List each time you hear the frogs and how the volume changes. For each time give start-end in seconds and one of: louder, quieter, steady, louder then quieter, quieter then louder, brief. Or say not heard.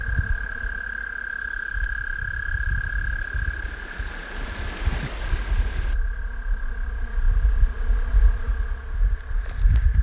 0.0-9.9 quieter.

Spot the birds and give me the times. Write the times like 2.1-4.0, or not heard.
not heard.